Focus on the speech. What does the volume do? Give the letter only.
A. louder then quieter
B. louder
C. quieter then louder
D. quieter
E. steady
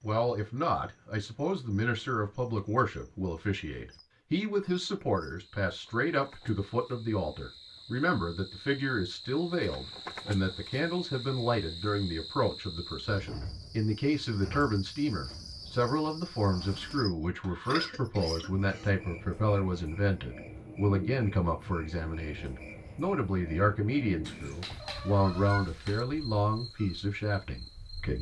E.